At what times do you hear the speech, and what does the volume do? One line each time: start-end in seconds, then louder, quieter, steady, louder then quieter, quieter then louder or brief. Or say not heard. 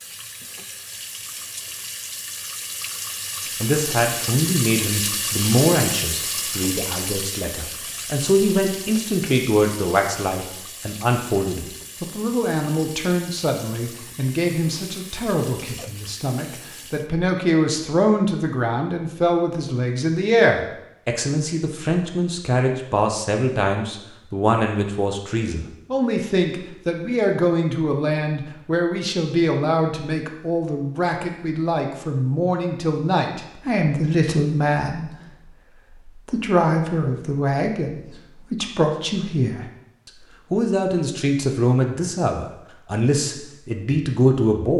3.6-44.7 steady.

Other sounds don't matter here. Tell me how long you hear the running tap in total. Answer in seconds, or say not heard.
17 s.